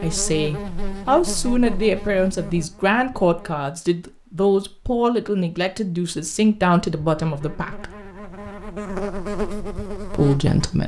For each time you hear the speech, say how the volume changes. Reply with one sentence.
You can hear the speech from 0.0 to 7.9 s, at a steady volume; and briefly from 10.1 to 10.8 s.